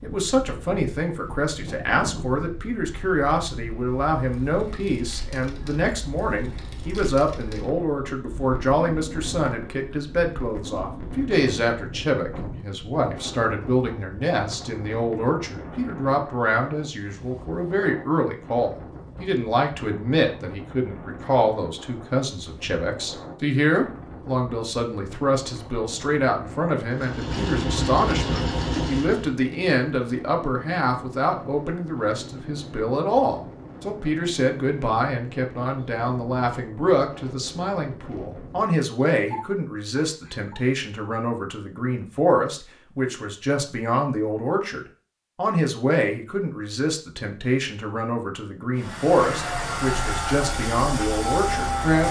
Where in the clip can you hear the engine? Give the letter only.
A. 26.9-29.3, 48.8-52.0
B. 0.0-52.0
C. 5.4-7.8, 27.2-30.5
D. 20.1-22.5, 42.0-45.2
A.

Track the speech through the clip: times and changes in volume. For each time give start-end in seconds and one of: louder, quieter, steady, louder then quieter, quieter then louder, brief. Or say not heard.
0.0-52.0 steady.